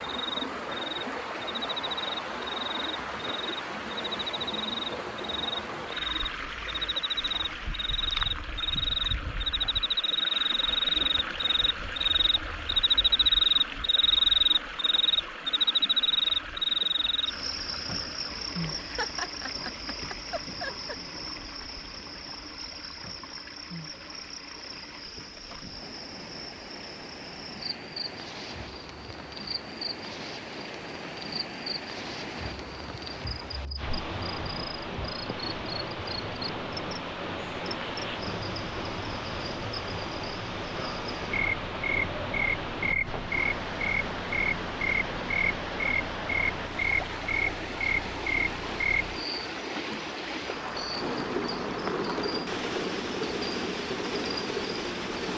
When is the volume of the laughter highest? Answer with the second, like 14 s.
19 s.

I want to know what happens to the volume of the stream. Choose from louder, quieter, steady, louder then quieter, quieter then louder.
quieter then louder.